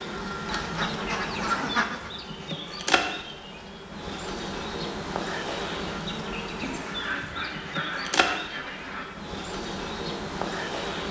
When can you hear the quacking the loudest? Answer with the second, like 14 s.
2 s.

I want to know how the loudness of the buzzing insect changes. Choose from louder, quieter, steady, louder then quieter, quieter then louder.
steady.